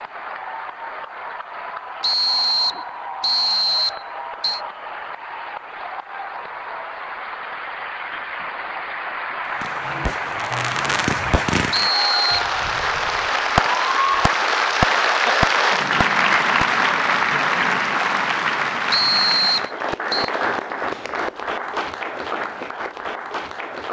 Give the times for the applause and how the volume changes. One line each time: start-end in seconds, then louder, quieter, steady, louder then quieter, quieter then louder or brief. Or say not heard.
0.0-23.8 louder then quieter.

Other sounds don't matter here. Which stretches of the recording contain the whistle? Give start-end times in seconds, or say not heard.
2.0-4.6, 11.7-12.5, 18.9-20.3.